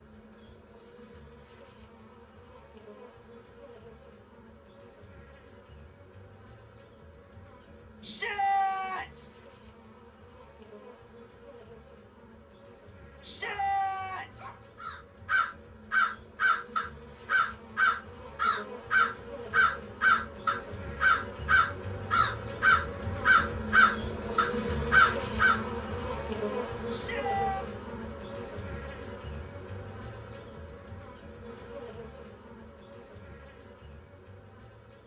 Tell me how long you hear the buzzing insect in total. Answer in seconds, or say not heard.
35 s.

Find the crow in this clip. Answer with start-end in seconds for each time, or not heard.
14.8-25.6.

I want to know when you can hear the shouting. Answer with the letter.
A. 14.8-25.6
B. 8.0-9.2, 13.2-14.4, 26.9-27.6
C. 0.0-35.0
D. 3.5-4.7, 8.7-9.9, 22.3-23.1
B.